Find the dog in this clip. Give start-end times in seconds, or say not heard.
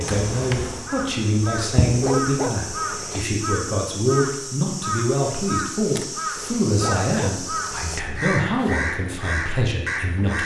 1.6-3.2, 6.3-8.1.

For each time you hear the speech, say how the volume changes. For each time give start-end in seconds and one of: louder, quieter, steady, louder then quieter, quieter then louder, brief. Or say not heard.
0.0-10.4 steady.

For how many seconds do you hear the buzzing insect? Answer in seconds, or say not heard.
2 s.